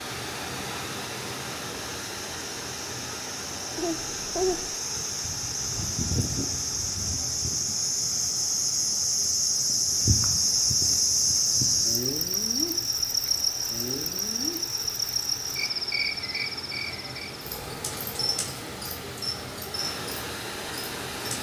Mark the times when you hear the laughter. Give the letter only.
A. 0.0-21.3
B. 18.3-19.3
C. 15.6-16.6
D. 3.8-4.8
D.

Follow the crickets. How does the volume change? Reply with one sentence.
The loudness of the crickets goes up, then down.